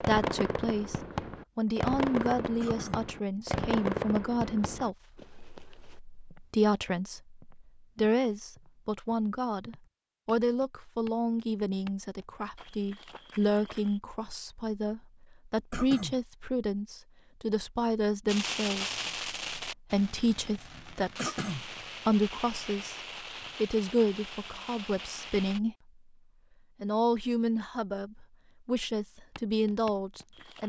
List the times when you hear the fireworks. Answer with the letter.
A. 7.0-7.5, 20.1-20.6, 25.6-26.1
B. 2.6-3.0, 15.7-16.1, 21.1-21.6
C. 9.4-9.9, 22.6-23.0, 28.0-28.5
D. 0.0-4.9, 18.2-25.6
D.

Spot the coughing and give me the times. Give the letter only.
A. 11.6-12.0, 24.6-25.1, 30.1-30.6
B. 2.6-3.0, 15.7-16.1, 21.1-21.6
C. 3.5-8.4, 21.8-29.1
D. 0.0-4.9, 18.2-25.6
B.